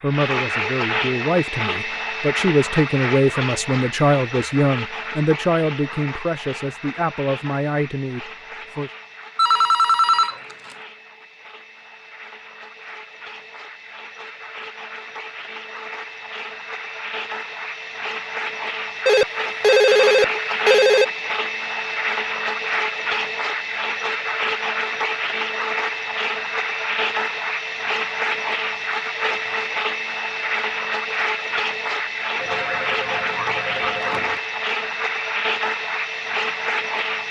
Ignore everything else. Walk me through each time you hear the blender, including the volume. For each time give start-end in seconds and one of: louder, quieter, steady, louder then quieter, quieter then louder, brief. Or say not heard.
0.0-37.2 quieter then louder.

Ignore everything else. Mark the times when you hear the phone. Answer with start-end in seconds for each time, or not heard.
9.3-10.8, 19.1-21.1, 32.4-34.4.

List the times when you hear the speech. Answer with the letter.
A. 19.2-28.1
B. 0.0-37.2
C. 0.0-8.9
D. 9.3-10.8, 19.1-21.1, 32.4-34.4
C.